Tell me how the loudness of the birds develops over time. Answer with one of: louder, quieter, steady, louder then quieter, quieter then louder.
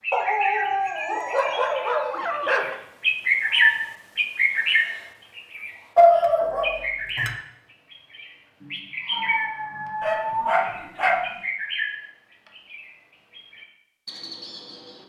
louder then quieter.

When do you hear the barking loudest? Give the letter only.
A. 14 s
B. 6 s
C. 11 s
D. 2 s
B.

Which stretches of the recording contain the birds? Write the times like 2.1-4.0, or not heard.
0.0-9.4, 10.5-15.0.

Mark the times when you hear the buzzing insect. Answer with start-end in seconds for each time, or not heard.
not heard.